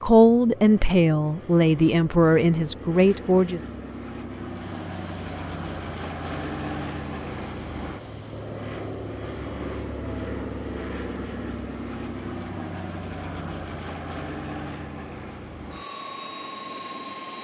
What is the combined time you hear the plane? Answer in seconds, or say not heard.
17 s.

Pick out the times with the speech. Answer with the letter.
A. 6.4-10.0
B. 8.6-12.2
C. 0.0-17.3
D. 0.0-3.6
D.